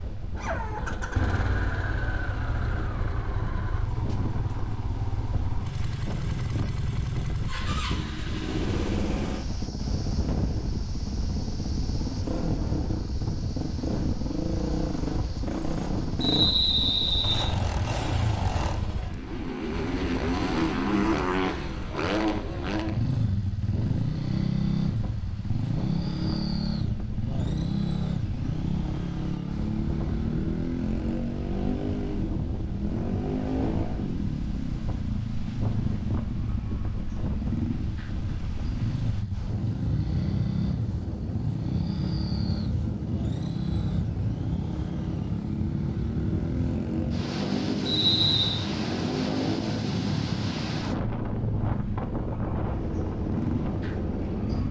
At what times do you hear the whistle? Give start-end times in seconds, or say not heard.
16.2-17.5, 47.9-48.6.